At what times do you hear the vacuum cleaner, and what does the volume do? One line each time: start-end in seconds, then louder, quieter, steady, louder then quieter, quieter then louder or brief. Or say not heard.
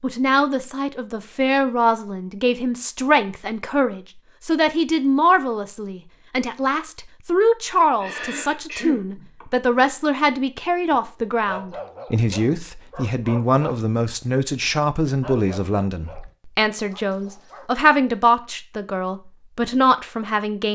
not heard.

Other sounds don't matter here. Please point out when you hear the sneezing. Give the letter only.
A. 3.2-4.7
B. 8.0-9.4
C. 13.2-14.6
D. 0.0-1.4
B.